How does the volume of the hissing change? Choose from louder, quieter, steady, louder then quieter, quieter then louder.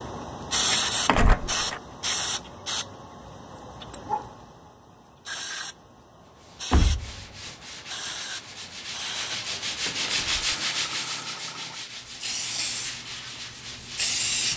quieter then louder.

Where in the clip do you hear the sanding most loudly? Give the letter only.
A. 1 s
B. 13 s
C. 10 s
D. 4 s
C.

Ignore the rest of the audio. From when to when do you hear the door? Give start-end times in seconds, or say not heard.
1.1-1.8, 6.7-7.2, 9.8-10.3.